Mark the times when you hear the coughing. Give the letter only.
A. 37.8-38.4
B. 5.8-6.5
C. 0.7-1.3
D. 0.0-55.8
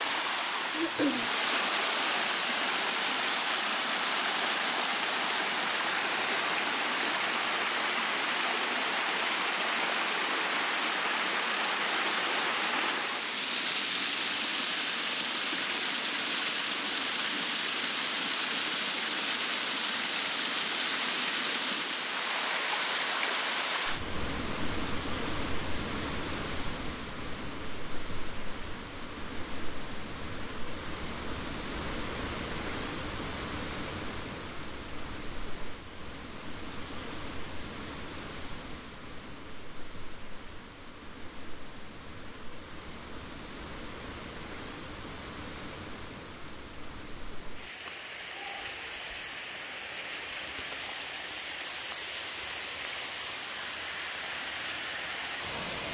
C.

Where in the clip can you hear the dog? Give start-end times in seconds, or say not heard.
not heard.